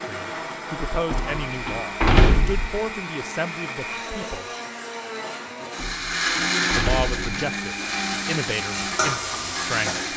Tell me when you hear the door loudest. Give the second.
2 s.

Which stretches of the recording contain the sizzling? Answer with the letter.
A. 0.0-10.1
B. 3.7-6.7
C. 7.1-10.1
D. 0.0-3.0
C.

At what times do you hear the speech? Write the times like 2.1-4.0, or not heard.
0.0-4.5, 6.6-10.1.